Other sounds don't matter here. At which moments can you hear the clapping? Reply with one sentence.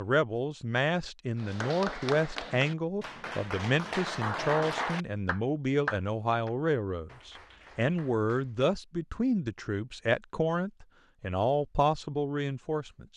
The clapping can be heard from 1.4 to 8.7 s.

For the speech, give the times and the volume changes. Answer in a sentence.
You can hear the speech from 0.0 to 13.1 s, at a steady volume.